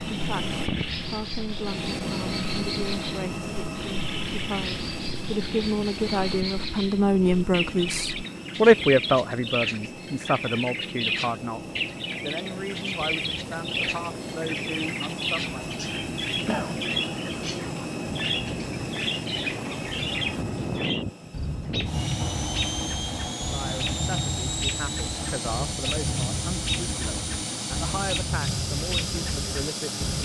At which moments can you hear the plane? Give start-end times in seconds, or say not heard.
0.0-30.2.